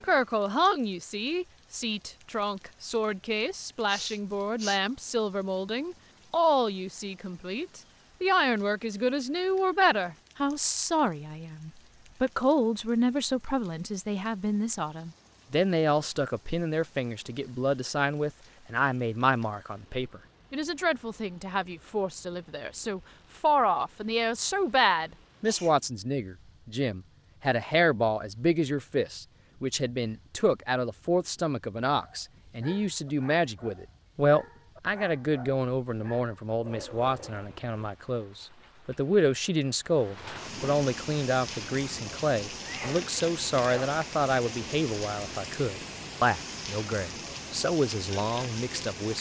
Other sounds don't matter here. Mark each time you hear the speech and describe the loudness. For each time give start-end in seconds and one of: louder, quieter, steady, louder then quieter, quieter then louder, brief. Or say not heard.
0.0-49.1 steady.